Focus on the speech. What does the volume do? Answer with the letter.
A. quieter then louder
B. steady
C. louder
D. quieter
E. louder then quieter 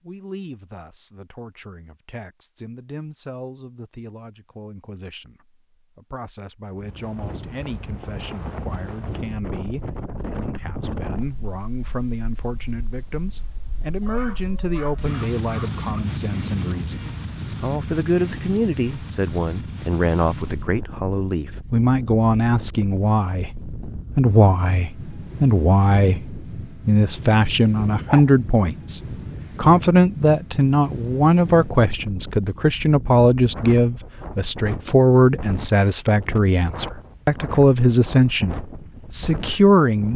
C.